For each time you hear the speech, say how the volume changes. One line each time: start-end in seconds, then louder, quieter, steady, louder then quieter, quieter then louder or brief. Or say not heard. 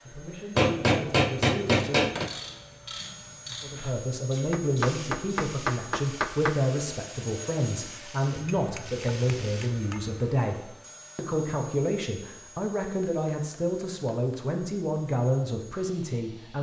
0.0-2.0 brief
3.6-16.5 steady.